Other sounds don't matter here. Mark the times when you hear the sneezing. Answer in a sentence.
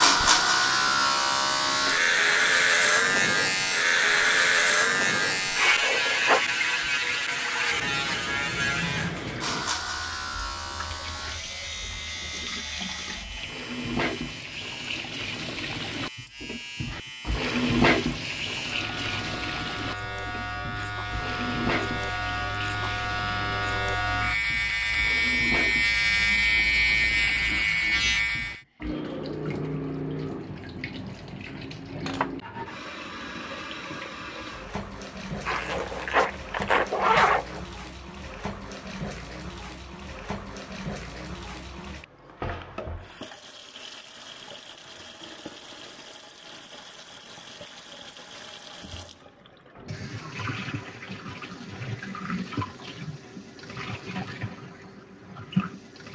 The sneezing can't be heard in this clip.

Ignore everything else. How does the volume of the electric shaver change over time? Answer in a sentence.
The loudness of the electric shaver goes down, then up.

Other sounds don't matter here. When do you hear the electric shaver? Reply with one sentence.
The electric shaver can be heard from 0.0 to 28.6 s.